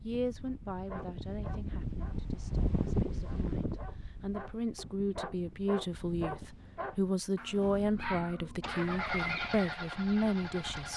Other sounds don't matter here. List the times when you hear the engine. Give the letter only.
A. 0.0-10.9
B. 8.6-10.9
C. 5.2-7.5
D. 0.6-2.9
B.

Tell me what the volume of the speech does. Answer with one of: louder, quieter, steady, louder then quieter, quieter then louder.
louder.